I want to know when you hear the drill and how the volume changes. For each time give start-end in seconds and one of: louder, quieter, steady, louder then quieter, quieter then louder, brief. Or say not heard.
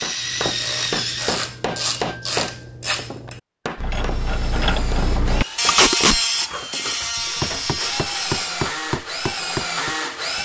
0.0-2.3 brief
4.0-10.3 louder.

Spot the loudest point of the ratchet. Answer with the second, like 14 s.
6 s.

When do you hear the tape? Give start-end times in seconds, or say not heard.
5.7-6.2.